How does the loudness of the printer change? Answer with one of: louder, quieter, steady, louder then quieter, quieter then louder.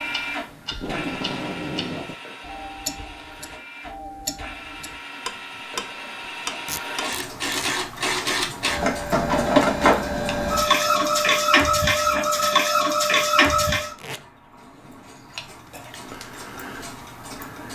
louder.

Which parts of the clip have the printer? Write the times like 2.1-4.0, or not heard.
0.0-13.9.